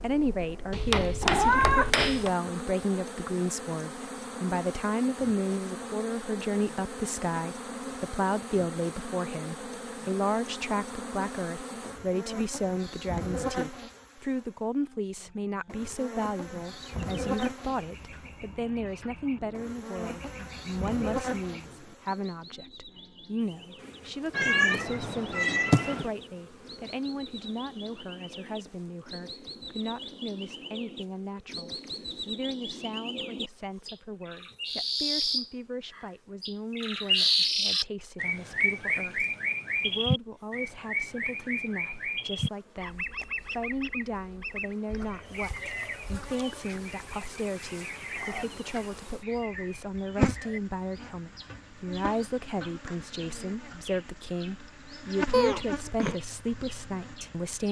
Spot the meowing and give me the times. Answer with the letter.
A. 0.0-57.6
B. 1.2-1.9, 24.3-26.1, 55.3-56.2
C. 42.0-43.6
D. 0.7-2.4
B.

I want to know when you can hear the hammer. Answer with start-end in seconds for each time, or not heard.
0.7-2.4.